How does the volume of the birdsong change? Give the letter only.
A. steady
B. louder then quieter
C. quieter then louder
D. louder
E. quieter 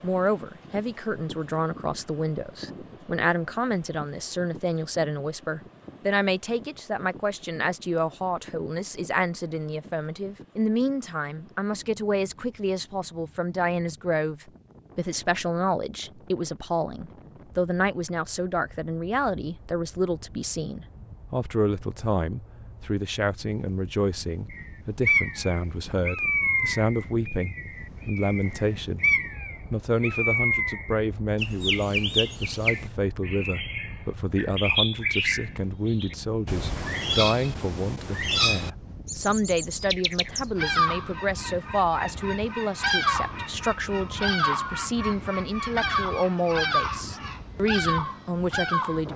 A.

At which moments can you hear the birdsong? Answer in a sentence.
The birdsong can be heard from 24.5 to 49.1 s.